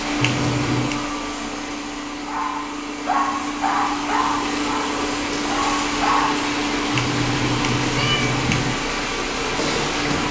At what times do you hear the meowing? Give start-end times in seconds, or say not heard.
0.2-1.1, 6.9-8.8.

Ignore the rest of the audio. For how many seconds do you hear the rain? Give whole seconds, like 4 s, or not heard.
10 s.